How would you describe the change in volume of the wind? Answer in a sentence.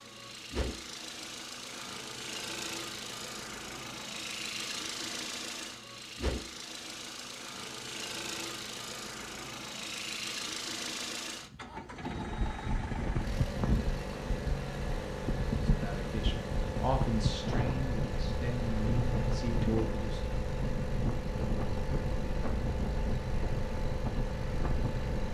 The volume of the wind stays about the same.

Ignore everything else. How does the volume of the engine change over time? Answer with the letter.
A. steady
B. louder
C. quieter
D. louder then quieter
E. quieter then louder
A.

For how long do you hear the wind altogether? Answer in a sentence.
The wind can be heard for 13 seconds in total.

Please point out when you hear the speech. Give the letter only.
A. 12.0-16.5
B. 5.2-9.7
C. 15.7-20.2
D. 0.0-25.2
C.